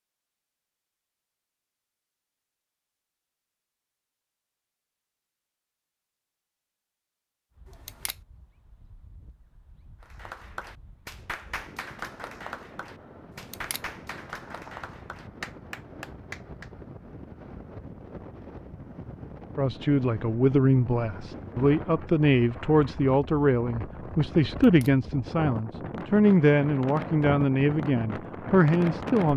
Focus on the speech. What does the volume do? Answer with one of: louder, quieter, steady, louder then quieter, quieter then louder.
steady.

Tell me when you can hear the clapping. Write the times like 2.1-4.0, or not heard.
10.0-16.7.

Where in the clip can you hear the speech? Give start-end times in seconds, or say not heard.
19.6-29.3.